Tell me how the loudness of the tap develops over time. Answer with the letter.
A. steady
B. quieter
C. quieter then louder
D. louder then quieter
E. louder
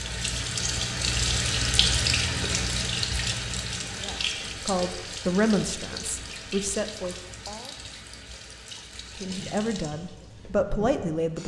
B.